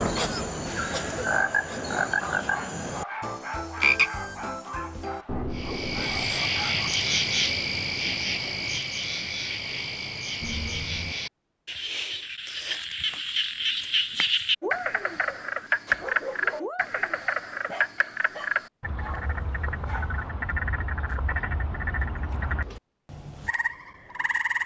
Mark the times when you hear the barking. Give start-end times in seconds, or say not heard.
1.3-7.0, 14.6-20.2.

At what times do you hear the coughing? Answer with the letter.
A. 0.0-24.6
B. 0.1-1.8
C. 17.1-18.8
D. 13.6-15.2
B.